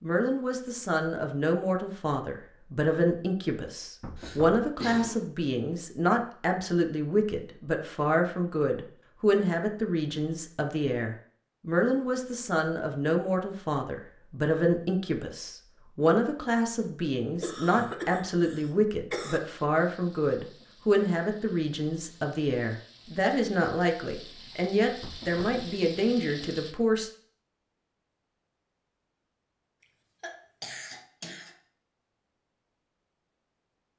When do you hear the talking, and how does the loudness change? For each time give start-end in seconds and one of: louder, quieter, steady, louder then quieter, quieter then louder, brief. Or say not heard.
0.0-27.1 steady.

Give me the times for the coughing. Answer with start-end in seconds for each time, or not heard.
4.2-5.2, 17.4-19.4, 29.8-31.6.